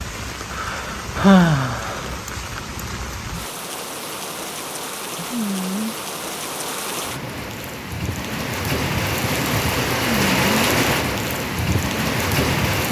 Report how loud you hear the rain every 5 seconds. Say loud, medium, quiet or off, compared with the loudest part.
medium, medium, loud.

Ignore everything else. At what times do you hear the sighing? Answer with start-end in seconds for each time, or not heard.
0.6-2.0, 5.3-6.0, 10.0-10.6.